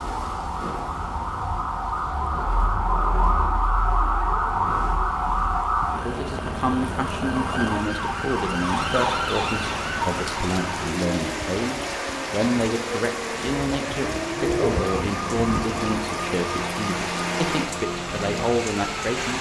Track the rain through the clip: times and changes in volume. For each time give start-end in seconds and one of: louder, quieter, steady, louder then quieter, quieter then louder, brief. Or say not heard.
0.0-19.3 louder.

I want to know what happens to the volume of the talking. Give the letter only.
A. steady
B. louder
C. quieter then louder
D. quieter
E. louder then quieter
A.